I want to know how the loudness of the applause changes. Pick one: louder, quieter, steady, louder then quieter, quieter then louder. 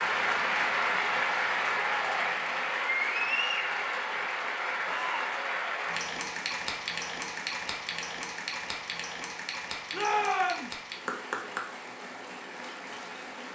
quieter.